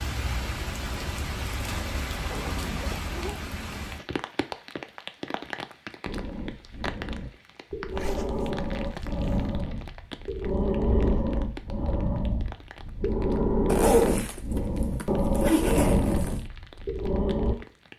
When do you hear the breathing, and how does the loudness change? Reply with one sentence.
The breathing can be heard from 6.0 to 17.6 s, getting louder.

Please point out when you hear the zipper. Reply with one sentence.
You can hear the zipper from 2.3 to 3.4 s, from 7.9 to 9.6 s and from 13.7 to 16.4 s.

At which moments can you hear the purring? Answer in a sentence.
You can't hear the purring here.